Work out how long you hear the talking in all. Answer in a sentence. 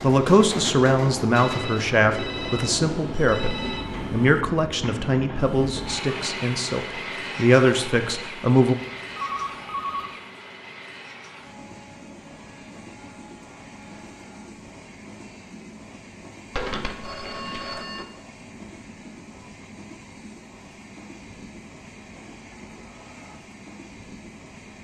The talking can be heard for 9 seconds in total.